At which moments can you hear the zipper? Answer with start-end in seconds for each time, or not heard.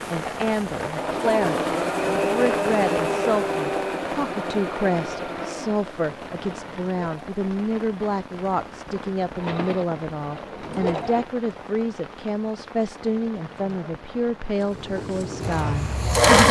not heard.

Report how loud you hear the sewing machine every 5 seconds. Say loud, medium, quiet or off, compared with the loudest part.
medium, quiet, quiet, loud.